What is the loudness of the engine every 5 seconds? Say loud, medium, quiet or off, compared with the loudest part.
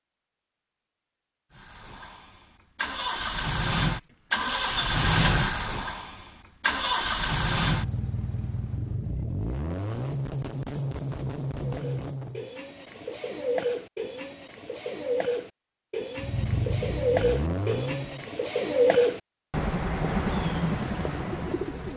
loud, loud, medium, medium, off.